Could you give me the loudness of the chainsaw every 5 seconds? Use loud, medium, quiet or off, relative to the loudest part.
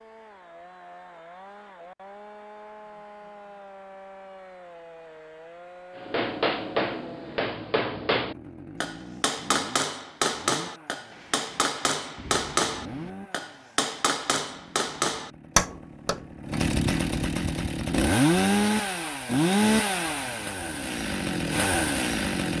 quiet, quiet, quiet, loud, loud.